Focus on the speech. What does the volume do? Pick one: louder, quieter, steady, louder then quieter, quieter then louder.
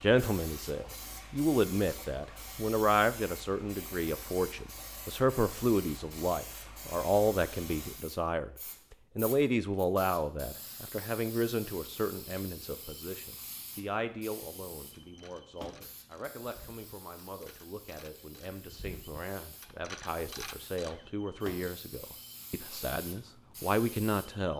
quieter then louder.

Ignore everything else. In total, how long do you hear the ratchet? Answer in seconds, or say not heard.
6 s.